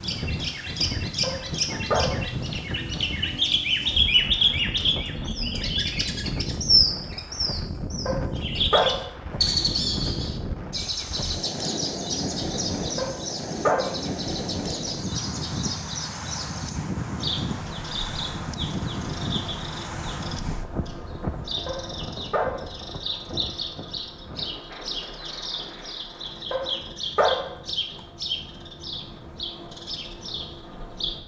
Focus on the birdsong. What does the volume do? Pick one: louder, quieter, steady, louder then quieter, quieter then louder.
quieter.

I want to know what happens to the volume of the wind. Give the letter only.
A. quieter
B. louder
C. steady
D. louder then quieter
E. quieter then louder
A.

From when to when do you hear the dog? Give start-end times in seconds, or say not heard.
1.2-2.3, 8.1-9.1, 12.9-14.1, 21.6-22.7, 26.5-27.6.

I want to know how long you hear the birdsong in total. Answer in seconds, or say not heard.
31 s.